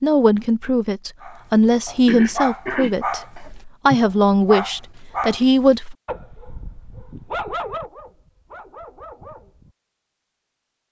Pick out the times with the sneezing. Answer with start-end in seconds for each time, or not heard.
2.0-4.0.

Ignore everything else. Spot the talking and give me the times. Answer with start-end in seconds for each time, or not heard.
0.0-6.0.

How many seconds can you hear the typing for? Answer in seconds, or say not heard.
not heard.